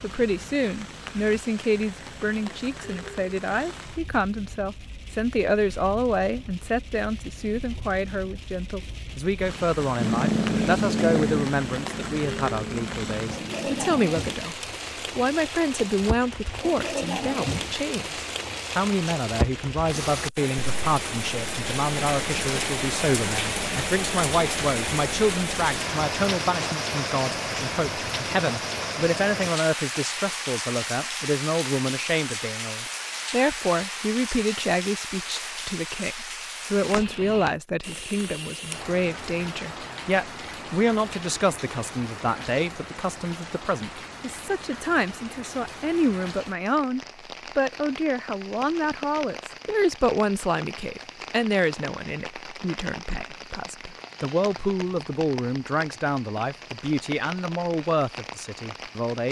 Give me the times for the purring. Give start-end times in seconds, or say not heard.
9.9-14.2.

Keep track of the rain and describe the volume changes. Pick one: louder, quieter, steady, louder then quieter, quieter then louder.
louder then quieter.